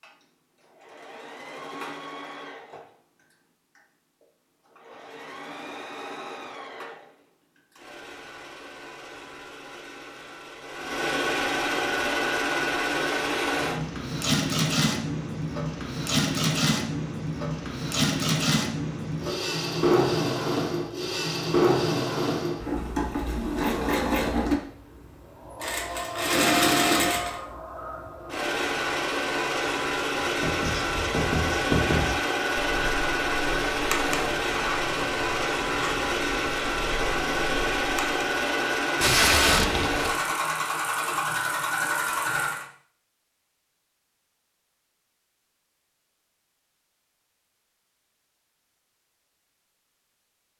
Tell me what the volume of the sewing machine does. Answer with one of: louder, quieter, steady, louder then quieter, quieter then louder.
louder.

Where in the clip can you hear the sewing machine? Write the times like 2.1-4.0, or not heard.
0.0-42.6.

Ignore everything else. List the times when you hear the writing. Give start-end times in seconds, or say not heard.
30.2-38.2.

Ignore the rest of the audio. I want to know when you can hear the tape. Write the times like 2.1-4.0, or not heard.
39.0-40.1.